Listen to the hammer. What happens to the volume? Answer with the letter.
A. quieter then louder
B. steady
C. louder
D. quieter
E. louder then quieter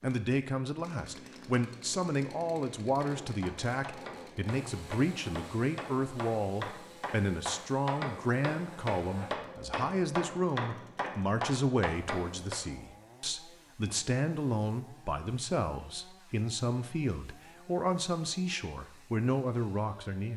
C.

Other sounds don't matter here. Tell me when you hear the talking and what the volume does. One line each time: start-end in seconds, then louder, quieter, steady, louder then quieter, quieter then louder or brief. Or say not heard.
0.0-20.3 steady.